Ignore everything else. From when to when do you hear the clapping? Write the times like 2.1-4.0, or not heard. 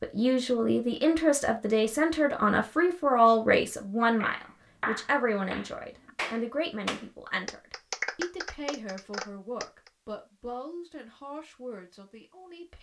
4.1-9.9.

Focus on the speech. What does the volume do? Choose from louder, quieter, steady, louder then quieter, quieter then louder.
quieter.